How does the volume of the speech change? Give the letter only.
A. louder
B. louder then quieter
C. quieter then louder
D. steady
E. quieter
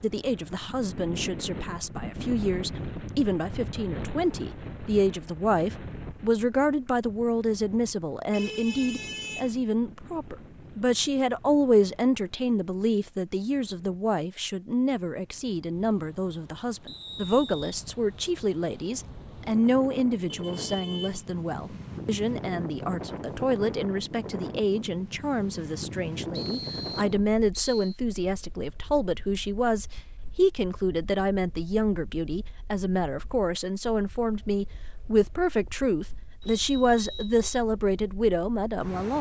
D.